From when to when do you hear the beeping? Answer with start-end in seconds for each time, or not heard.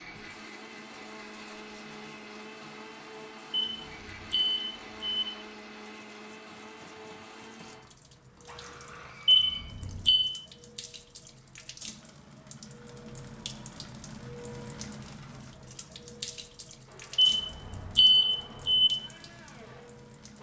3.5-5.2, 9.2-10.3, 17.1-18.9.